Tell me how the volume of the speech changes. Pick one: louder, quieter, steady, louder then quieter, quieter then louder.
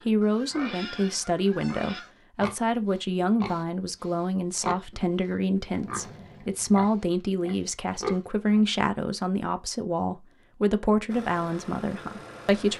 steady.